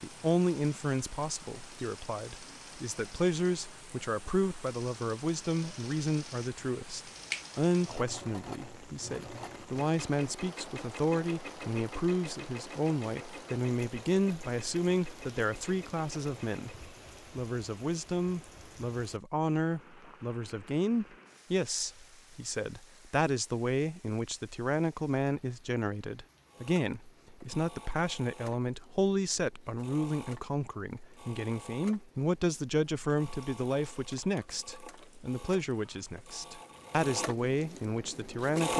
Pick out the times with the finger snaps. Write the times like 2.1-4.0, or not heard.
7.2-8.1.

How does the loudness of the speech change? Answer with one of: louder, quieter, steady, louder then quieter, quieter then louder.
steady.